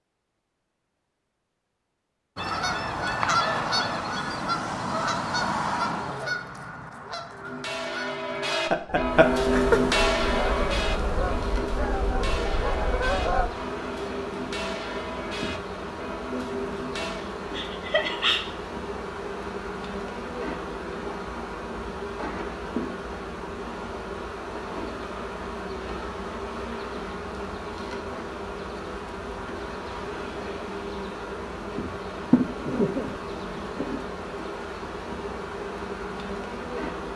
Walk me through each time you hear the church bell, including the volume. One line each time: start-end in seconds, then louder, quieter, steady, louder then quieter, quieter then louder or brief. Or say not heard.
7.3-17.4 quieter.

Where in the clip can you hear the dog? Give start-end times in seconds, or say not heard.
not heard.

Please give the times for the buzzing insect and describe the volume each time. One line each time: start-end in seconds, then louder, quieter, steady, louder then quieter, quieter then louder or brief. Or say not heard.
9.1-37.1 steady.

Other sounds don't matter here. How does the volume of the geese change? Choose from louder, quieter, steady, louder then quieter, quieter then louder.
quieter then louder.